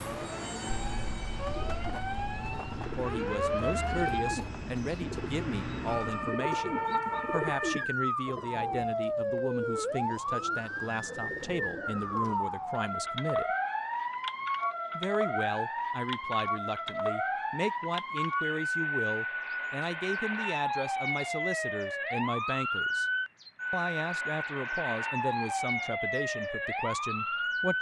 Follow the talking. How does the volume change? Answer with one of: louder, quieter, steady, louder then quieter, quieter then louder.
steady.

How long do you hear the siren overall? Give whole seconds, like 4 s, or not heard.
28 s.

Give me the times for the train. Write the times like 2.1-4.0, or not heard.
0.0-6.5.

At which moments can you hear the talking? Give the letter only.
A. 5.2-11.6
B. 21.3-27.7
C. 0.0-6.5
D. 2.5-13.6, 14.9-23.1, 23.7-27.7
D.